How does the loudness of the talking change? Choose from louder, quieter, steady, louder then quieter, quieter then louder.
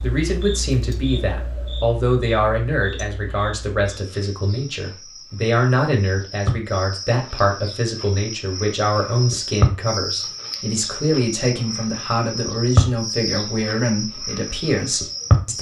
steady.